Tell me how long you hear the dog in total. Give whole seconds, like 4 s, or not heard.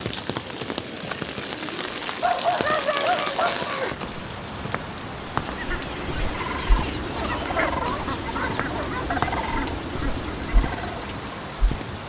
4 s.